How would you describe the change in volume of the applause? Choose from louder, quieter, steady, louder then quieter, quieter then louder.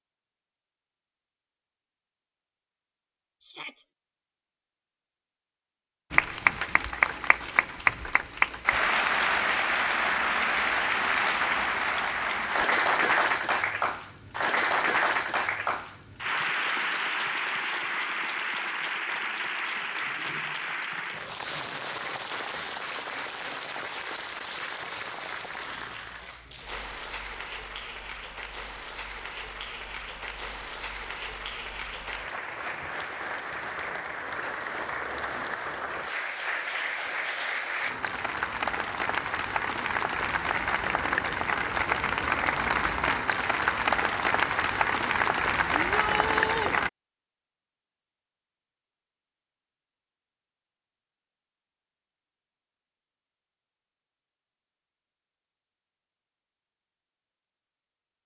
quieter then louder.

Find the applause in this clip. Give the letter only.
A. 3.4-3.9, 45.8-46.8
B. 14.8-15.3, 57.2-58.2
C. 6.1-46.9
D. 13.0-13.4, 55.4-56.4
C.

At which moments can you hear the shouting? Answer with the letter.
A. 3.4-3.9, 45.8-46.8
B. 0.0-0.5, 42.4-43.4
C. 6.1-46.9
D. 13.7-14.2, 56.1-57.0
A.